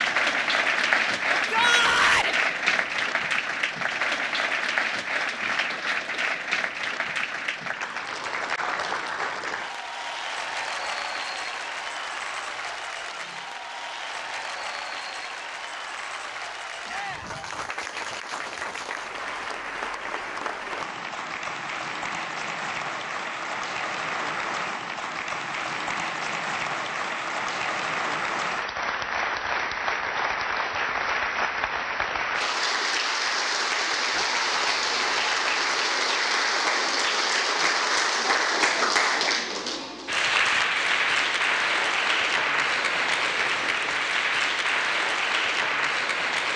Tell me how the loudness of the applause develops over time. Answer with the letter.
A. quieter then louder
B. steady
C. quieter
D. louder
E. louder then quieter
A.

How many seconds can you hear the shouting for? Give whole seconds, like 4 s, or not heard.
3 s.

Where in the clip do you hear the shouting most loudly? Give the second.
2 s.